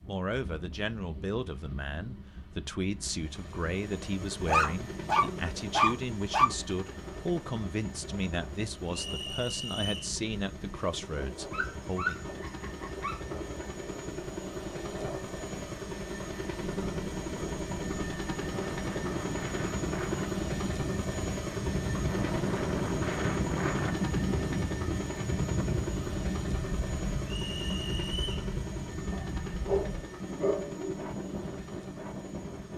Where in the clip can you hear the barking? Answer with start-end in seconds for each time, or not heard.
4.5-6.5, 11.5-13.8, 29.1-31.1.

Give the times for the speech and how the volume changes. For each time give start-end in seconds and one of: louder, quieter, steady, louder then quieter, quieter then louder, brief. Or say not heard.
0.1-12.2 steady.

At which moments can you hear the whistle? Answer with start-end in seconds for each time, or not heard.
8.9-10.2, 27.2-28.4.